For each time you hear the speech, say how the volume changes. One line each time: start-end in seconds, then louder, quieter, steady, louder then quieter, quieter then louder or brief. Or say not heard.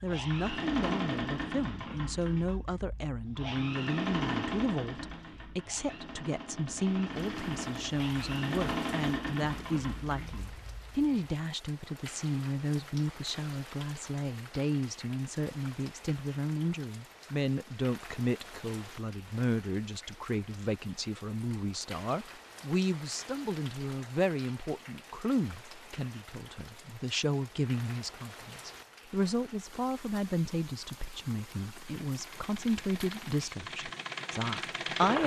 0.0-35.2 steady.